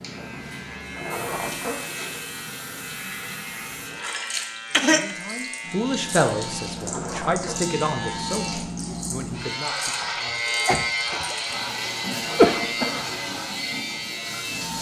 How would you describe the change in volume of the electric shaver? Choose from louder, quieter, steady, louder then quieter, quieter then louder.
louder.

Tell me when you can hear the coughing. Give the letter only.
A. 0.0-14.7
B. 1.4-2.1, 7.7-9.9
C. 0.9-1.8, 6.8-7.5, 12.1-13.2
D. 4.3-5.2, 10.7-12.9
D.